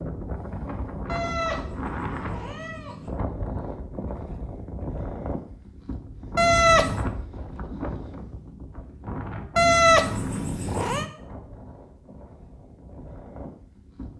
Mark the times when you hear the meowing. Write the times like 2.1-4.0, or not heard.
1.1-3.1, 6.3-7.0, 9.6-11.1.